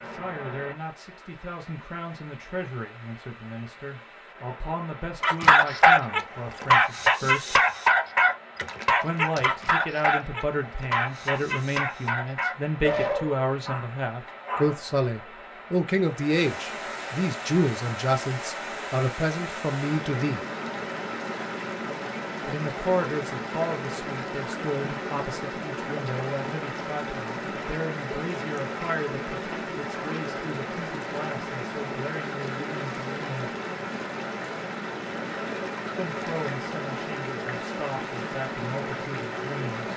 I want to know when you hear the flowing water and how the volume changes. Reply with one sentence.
You can hear the flowing water from 0.0 to 39.9 s, getting louder.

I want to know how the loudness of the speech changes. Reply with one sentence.
The volume of the speech goes up, then down.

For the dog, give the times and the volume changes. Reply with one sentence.
You can hear the dog from 5.2 to 14.8 s, getting quieter.